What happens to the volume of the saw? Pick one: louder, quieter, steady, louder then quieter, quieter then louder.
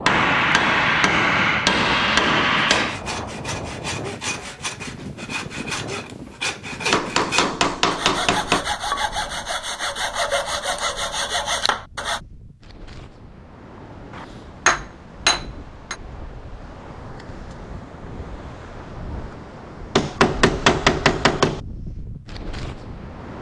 louder.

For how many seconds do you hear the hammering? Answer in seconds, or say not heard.
8 s.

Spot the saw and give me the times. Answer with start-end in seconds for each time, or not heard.
2.8-12.2.